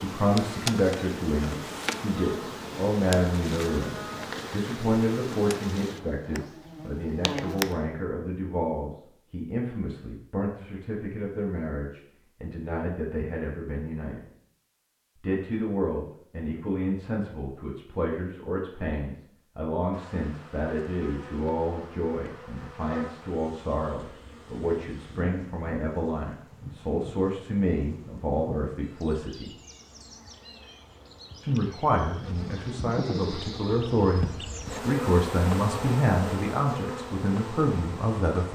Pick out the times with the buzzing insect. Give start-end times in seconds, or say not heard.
0.0-7.8, 19.9-38.5.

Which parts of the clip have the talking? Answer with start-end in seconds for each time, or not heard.
0.0-14.2, 15.2-29.5, 31.4-38.5.